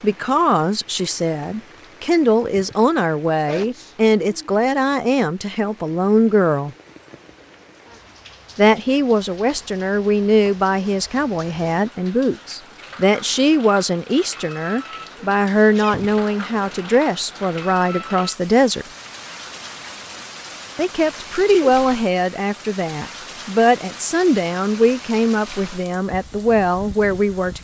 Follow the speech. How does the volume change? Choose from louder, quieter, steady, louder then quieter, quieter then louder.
steady.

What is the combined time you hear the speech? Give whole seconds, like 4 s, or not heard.
24 s.